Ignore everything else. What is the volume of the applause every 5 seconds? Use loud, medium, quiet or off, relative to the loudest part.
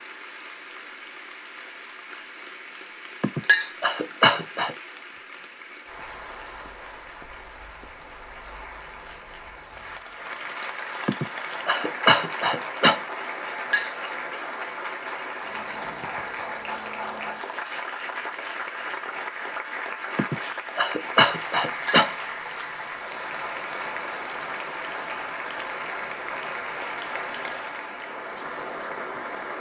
medium, medium, loud, loud, loud, loud.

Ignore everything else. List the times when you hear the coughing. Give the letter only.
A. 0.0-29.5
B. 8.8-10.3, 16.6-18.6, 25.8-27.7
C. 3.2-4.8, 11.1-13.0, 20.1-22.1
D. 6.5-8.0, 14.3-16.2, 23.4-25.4
C.